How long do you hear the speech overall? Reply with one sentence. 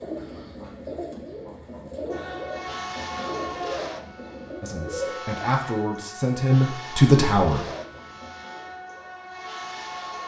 The speech can be heard for 3 seconds in total.